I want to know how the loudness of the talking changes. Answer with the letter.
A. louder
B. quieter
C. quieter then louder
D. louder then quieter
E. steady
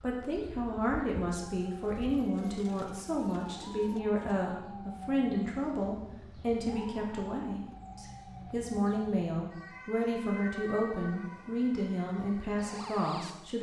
E.